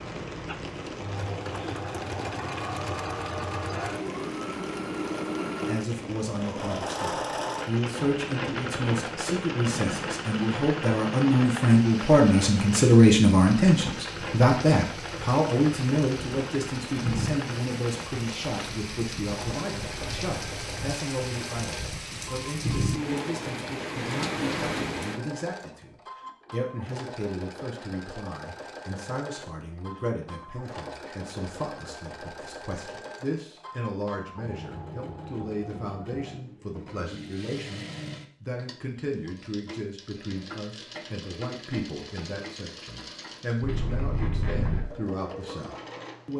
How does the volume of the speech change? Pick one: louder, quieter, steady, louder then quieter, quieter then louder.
quieter.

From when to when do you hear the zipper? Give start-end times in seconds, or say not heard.
43.6-44.9.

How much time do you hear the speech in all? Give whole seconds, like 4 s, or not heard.
41 s.